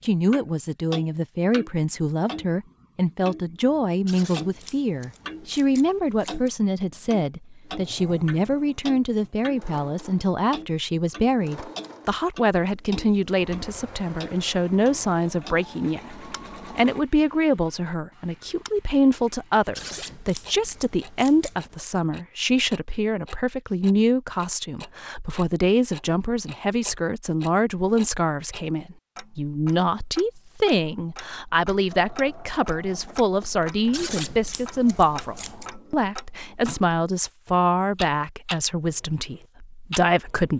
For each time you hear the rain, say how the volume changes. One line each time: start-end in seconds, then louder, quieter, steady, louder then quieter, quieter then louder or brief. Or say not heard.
not heard.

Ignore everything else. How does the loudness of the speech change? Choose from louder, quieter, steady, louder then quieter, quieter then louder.
steady.